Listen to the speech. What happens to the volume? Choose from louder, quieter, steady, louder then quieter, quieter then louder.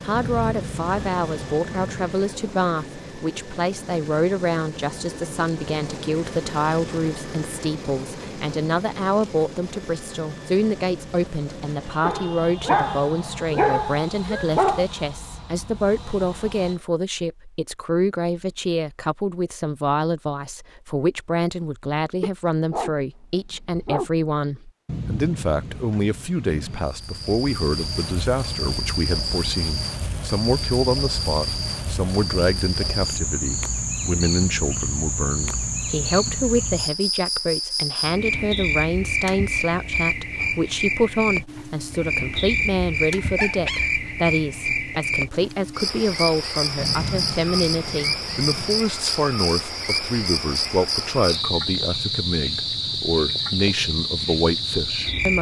steady.